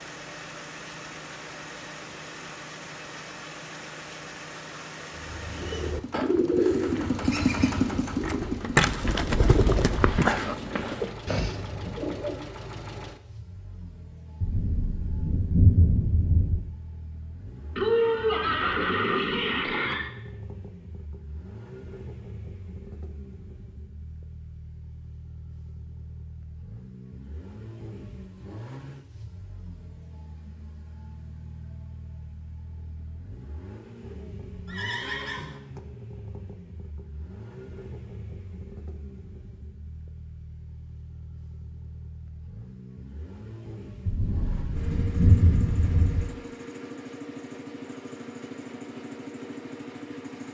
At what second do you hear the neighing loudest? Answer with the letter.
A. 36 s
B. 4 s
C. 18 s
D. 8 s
C.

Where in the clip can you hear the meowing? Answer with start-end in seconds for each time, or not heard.
not heard.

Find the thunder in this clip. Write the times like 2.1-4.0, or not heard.
14.4-16.6, 44.0-46.2.